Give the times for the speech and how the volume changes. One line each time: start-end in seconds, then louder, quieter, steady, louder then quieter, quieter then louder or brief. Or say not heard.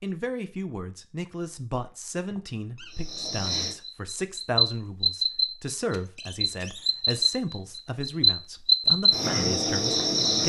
0.0-10.4 steady.